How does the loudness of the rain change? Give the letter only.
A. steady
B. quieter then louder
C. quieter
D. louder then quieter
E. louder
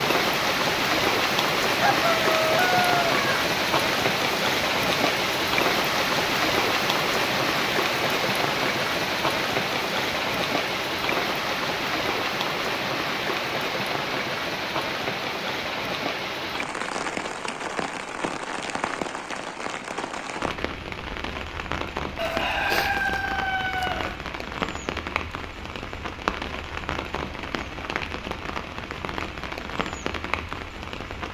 C.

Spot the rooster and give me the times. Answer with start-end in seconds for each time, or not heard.
1.7-3.2, 22.1-24.1.